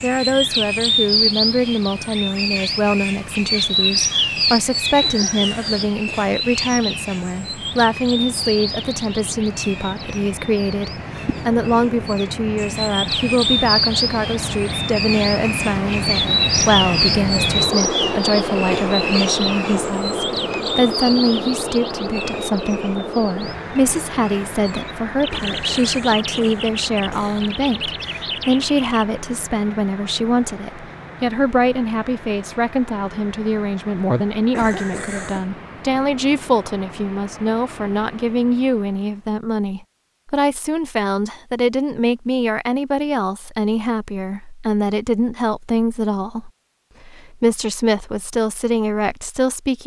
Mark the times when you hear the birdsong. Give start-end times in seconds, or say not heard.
0.0-29.1.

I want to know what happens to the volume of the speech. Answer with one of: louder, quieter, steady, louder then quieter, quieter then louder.
steady.